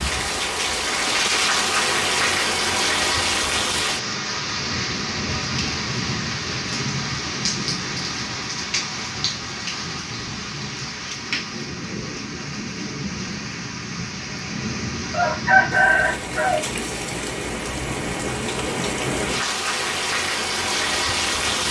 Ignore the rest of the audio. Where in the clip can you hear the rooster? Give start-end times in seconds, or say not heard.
15.1-16.6.